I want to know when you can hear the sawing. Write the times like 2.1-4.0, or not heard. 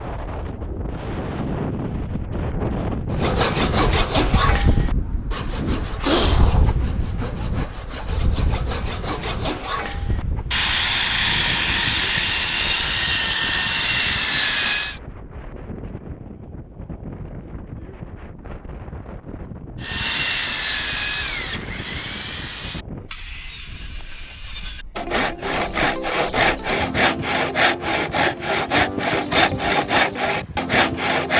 3.1-15.0, 19.8-31.3.